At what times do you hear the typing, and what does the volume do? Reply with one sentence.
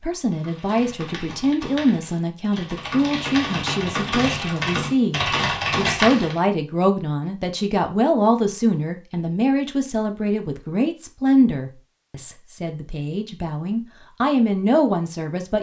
You can hear the typing from 0.2 to 6.4 s, getting louder.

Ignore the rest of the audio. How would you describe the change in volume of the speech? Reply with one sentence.
The volume of the speech stays about the same.